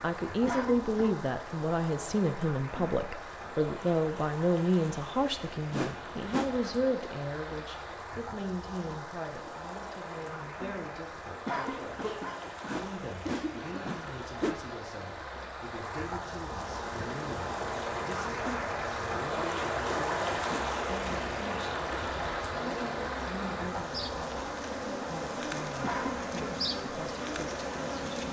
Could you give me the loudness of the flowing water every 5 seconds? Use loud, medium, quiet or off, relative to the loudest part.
medium, medium, medium, loud, loud, medium.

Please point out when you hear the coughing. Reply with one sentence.
You can hear the coughing from 0.5 to 1.2 s, from 11.4 to 14.1 s and from 25.8 to 26.5 s.